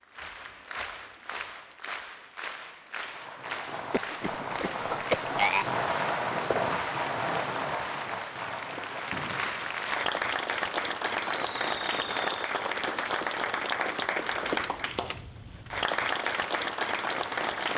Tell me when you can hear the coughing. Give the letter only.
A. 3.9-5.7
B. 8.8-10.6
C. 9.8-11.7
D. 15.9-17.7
A.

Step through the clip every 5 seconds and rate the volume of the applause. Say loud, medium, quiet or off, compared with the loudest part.
medium, medium, loud, loud.